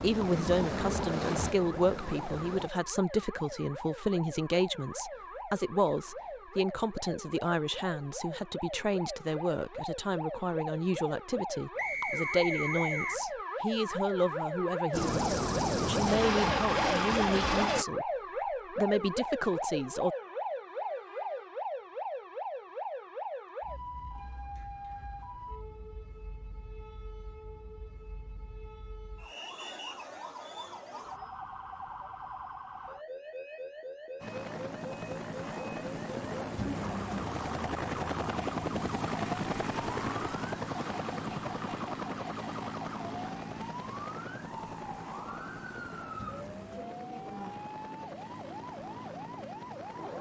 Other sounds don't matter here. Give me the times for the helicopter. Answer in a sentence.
The helicopter can be heard from 0.0 to 2.7 s, from 14.9 to 17.9 s and from 34.2 to 50.1 s.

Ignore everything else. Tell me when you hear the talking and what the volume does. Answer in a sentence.
The talking can be heard from 0.0 to 20.1 s, at a steady volume.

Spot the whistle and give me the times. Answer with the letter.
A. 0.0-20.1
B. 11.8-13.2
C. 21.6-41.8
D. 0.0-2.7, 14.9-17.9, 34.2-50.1
B.